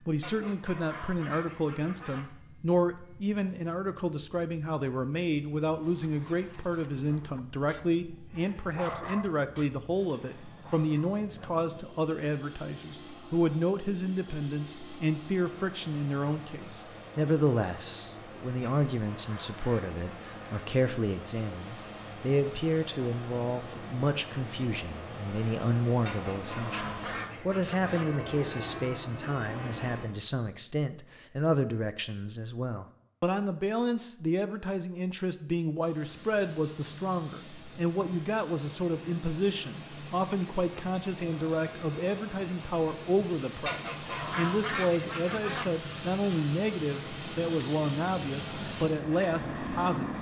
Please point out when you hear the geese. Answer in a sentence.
You can hear the geese from 0.2 to 2.2 s, from 18.6 to 20.6 s, from 26.1 to 28.1 s and from 43.6 to 45.6 s.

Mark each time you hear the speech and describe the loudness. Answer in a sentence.
You can hear the speech from 0.1 to 50.1 s, at a steady volume.